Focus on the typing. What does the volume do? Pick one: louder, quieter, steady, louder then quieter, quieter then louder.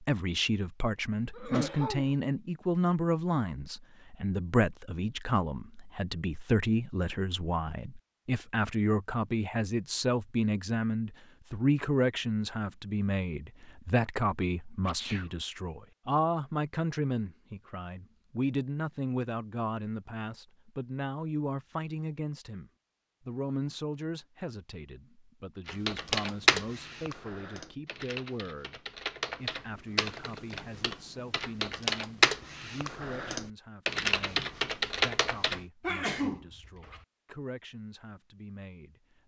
quieter then louder.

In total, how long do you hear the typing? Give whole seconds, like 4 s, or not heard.
10 s.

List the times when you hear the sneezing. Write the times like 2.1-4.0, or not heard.
1.4-2.1, 14.8-15.2, 35.8-37.0.